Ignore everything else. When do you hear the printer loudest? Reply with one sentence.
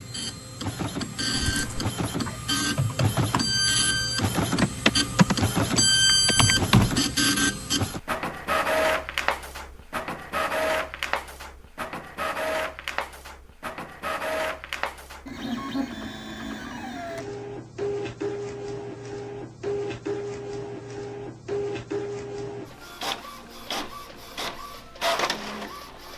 The loudest moment of the printer is at 6 seconds.